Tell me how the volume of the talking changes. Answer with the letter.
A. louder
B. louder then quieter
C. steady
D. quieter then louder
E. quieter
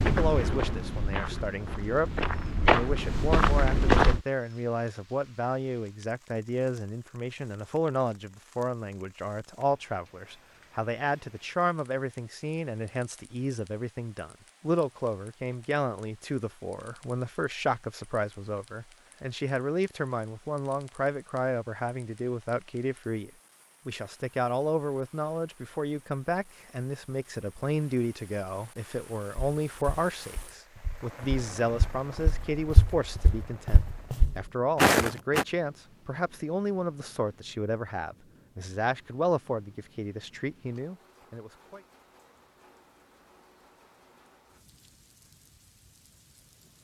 C.